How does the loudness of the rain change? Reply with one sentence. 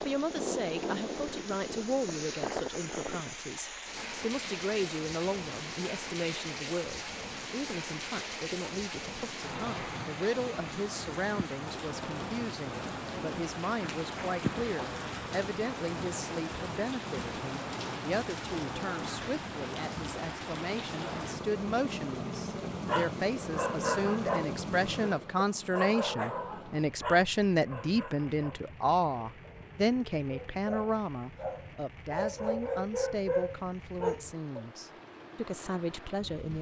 The volume of the rain goes down.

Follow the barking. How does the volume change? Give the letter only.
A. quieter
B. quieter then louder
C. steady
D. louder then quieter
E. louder
B.